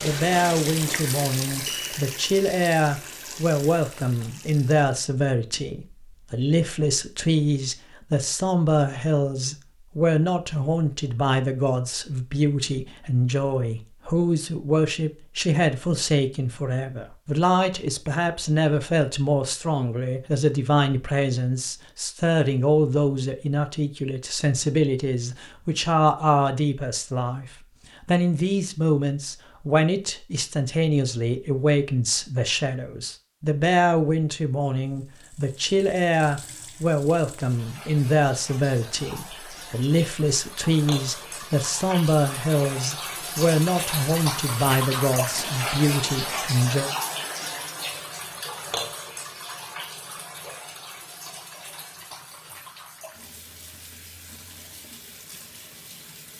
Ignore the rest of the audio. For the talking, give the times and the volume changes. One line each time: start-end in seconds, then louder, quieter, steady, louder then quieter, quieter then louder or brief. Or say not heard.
0.0-46.9 steady.